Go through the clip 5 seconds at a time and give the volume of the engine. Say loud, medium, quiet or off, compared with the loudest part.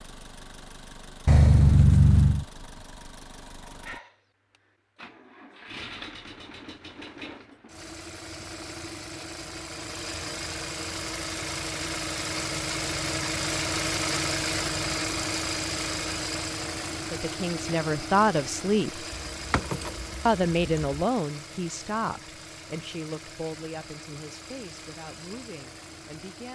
quiet, medium, loud, loud, quiet, quiet.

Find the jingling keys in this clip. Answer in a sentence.
The jingling keys can be heard from 1.2 to 2.5 s and from 19.3 to 21.0 s.